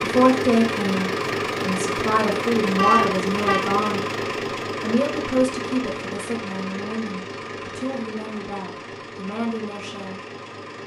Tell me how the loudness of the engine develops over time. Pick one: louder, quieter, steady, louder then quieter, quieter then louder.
quieter.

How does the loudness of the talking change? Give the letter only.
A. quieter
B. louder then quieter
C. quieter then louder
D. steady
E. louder
A.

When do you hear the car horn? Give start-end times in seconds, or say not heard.
2.8-3.6.